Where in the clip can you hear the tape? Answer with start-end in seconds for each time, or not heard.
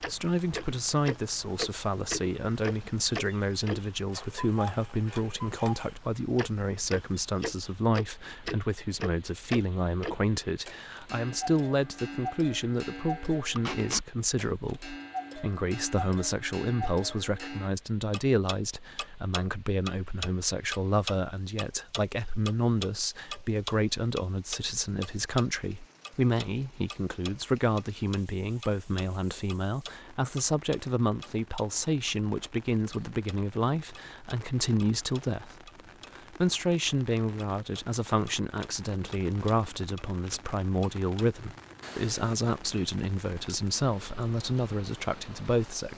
13.6-14.1, 39.3-40.4.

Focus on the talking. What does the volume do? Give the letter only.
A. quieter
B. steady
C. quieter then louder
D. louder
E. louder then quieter
B.